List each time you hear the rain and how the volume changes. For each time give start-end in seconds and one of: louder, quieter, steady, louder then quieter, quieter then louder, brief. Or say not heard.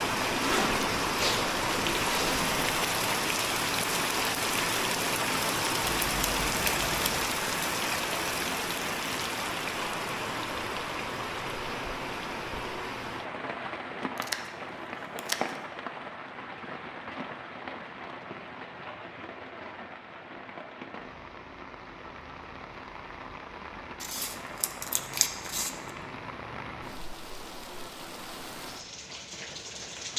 0.0-30.1 quieter.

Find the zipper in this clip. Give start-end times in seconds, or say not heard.
0.4-2.6.